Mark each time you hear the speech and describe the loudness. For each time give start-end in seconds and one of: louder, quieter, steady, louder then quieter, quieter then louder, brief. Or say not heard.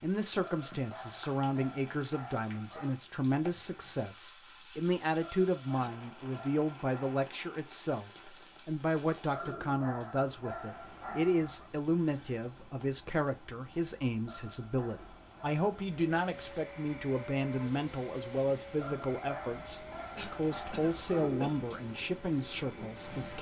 0.0-23.3 steady.